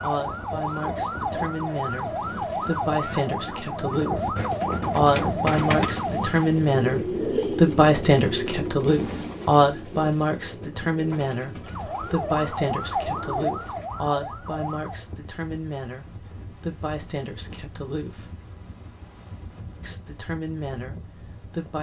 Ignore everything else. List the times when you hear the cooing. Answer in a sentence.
The cooing can be heard from 4.3 to 13.9 s.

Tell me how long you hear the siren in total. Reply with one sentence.
You can hear the siren for 10 seconds altogether.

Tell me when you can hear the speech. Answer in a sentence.
You can hear the speech from 0.0 to 4.3 s, from 4.9 to 18.3 s and from 19.8 to 21.7 s.